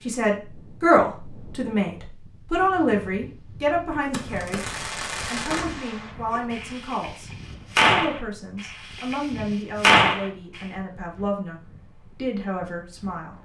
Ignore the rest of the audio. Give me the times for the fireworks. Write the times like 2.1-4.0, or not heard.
4.1-10.6.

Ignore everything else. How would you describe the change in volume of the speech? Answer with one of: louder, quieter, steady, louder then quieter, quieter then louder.
quieter.